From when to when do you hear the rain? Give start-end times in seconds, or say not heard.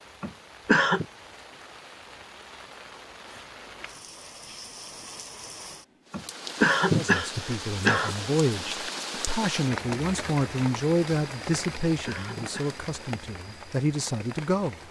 0.0-14.8.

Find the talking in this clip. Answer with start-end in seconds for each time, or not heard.
6.9-14.8.